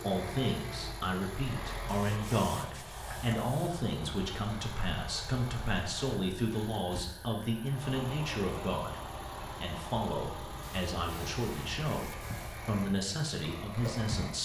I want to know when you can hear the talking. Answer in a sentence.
You can hear the talking from 0.0 to 14.3 s.